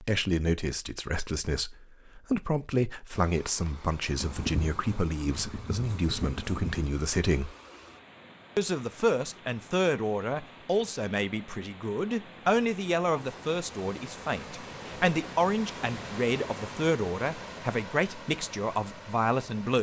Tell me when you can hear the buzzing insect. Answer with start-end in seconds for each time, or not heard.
4.2-6.9.